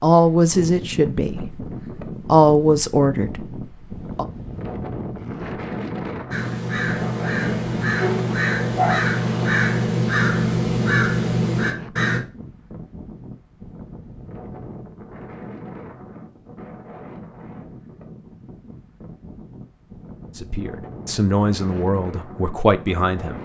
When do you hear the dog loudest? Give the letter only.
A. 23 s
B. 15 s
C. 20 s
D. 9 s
D.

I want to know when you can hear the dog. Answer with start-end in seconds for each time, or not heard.
7.0-9.5.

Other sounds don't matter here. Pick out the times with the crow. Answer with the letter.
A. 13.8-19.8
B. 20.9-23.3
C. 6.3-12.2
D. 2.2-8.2
C.